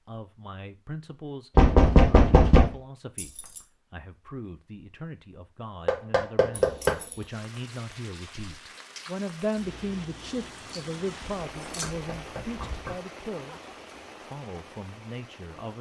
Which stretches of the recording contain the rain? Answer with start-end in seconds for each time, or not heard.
7.2-15.7.